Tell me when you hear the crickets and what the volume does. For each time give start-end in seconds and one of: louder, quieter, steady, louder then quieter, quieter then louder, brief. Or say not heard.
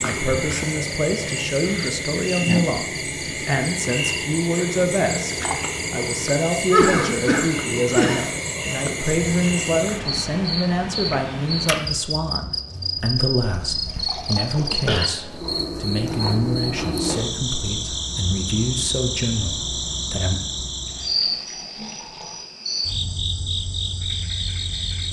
0.0-25.0 steady.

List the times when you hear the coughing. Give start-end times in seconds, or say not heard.
6.7-8.2, 13.7-15.1.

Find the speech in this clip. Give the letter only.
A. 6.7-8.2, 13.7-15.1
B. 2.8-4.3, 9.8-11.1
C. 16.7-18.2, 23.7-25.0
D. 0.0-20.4
D.